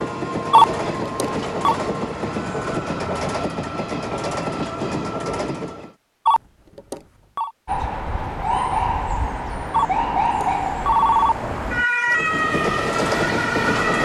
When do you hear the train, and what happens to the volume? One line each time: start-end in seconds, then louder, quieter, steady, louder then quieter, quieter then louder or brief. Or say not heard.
0.0-6.0 steady
12.1-14.0 brief.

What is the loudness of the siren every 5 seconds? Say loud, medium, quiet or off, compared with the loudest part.
off, loud, loud.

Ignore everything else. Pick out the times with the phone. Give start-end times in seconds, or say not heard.
0.5-1.8, 6.2-7.5, 9.7-11.3.